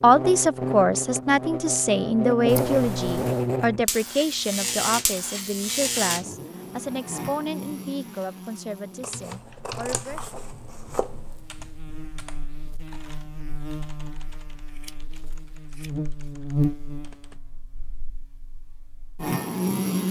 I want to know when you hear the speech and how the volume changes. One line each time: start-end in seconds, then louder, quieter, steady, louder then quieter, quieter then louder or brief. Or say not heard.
0.0-10.3 quieter.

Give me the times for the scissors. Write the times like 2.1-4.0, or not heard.
2.5-3.5, 9.0-11.4, 14.7-16.4.